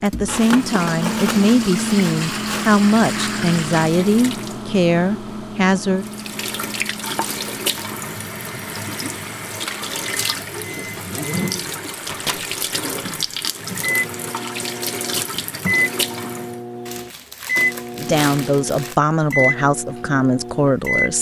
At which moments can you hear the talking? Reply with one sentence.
You can hear the talking from 0.0 to 6.0 s and from 17.9 to 21.1 s.